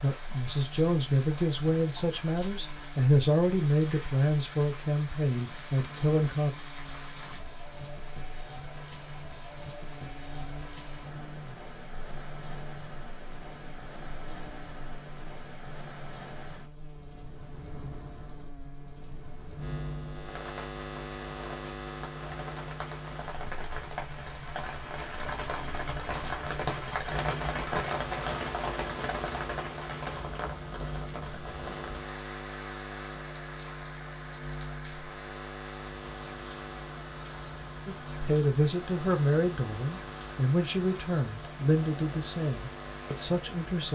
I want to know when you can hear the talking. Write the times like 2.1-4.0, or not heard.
0.0-6.5, 37.9-43.9.